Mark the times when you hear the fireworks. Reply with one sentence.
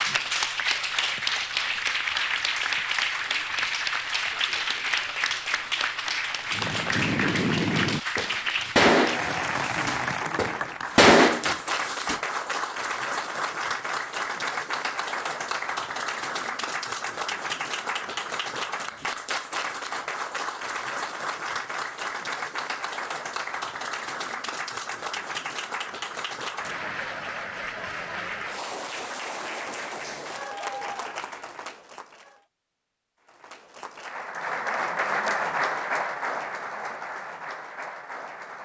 You can hear the fireworks from 6.5 to 12.2 s.